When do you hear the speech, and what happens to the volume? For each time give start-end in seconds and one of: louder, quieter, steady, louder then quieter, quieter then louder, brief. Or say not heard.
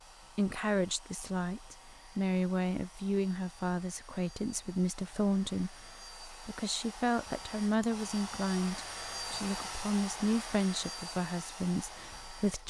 0.3-12.6 steady.